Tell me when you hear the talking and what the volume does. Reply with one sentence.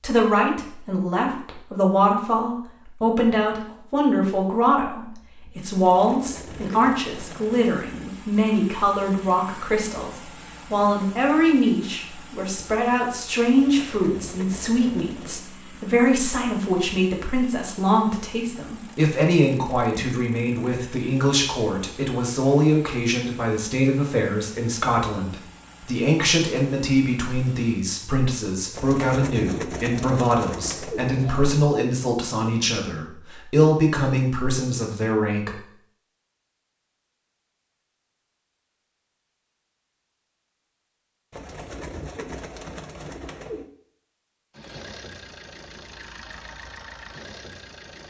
The talking can be heard from 0.0 to 35.6 s, at a steady volume.